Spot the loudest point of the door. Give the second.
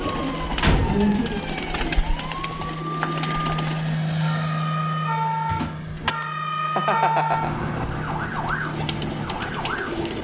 1 s.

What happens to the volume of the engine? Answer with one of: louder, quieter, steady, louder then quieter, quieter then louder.
louder then quieter.